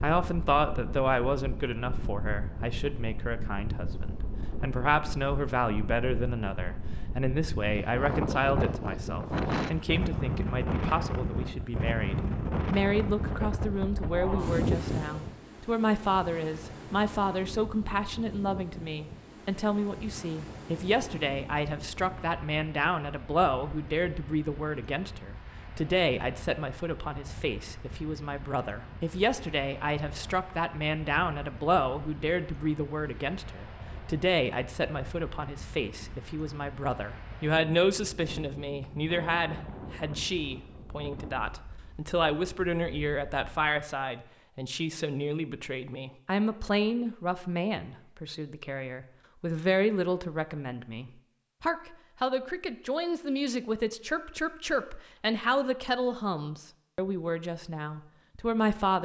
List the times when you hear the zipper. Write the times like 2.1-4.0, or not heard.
not heard.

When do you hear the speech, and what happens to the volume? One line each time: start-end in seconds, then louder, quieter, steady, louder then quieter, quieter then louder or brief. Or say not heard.
0.0-59.0 steady.